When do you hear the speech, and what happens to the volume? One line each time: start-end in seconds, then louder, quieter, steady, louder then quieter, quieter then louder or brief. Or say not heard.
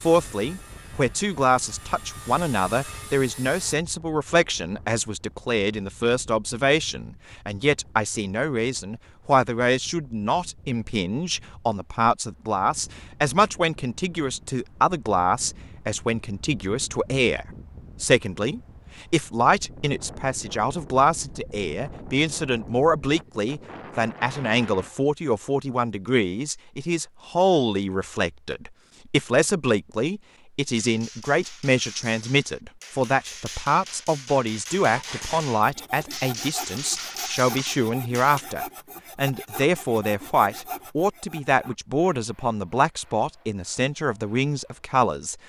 0.0-45.4 steady.